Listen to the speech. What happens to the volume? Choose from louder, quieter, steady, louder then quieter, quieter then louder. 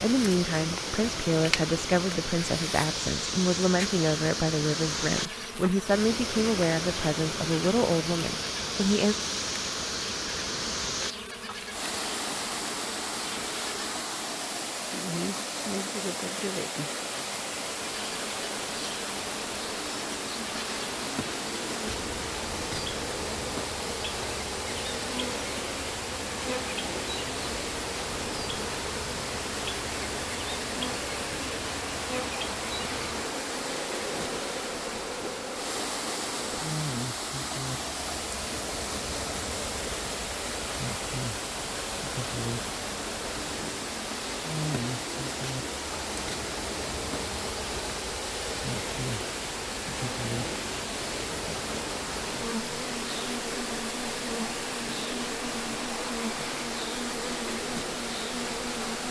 steady.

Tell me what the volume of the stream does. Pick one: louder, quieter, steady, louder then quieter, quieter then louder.
steady.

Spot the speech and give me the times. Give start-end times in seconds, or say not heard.
0.0-9.2.